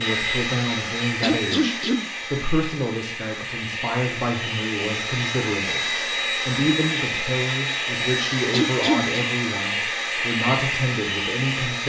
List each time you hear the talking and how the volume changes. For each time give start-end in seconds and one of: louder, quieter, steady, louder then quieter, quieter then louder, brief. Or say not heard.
0.0-11.8 steady.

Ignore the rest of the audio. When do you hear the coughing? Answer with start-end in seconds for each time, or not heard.
1.2-2.1, 8.5-9.2.